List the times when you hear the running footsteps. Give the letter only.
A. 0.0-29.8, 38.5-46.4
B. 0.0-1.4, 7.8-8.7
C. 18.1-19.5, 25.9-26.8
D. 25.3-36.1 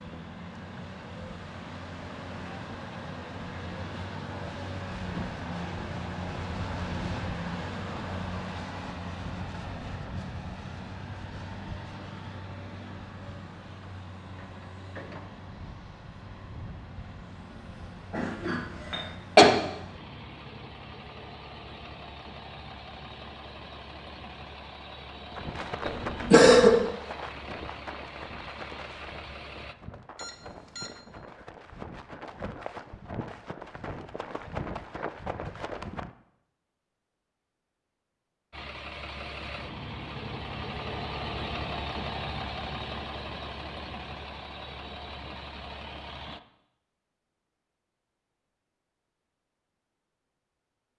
D.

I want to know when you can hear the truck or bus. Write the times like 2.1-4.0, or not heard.
0.0-29.8, 38.5-46.4.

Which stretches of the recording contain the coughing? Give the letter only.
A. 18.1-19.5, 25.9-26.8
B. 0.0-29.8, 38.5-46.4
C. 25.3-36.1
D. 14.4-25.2
A.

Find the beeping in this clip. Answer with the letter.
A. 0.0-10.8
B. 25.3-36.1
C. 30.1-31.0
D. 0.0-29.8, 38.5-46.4
C.